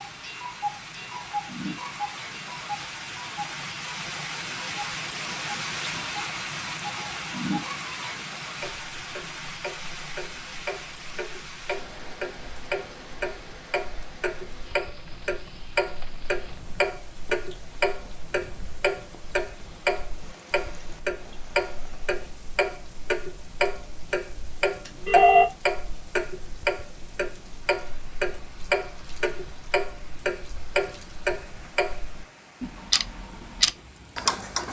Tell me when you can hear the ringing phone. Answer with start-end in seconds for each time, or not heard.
24.9-25.4.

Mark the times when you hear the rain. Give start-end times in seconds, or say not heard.
0.0-34.4.